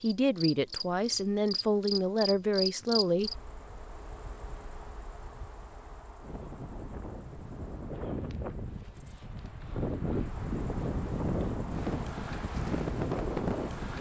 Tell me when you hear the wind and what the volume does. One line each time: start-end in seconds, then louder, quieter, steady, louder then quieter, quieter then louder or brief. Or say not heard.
6.2-13.9 louder.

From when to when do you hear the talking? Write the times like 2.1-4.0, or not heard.
0.0-3.5.